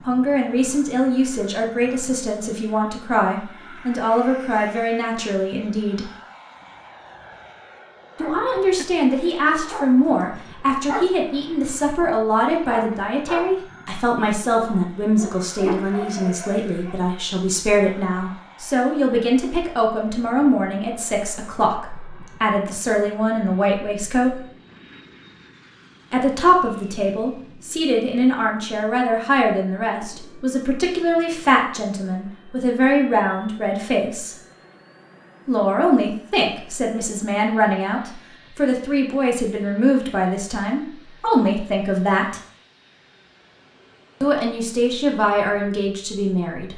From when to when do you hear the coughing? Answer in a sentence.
The coughing can't be heard in this clip.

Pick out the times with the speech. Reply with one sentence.
The speech can be heard from 0.1 to 6.0 s, from 8.2 to 24.4 s, from 26.1 to 34.4 s, from 35.5 to 42.4 s and from 44.2 to 46.7 s.